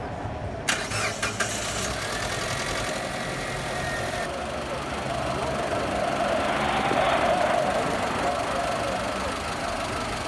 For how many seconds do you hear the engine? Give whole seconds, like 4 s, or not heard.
10 s.